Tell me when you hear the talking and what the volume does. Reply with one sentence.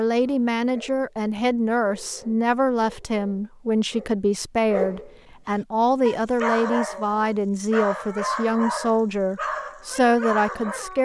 The talking can be heard from 0.0 to 11.0 s, at a steady volume.